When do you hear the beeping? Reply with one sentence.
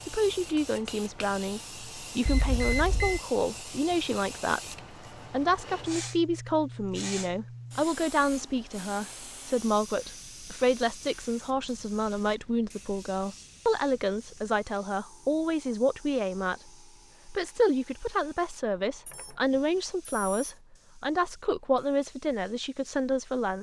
The beeping can be heard from 2.2 to 3.2 s and from 19.1 to 20.6 s.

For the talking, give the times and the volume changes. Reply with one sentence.
You can hear the talking from 0.0 to 23.5 s, at a steady volume.